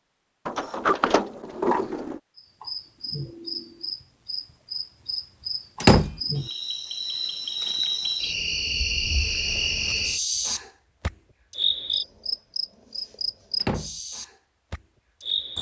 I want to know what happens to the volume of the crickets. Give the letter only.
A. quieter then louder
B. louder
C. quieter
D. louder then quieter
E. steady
D.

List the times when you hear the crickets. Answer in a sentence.
You can hear the crickets from 2.4 to 15.5 s.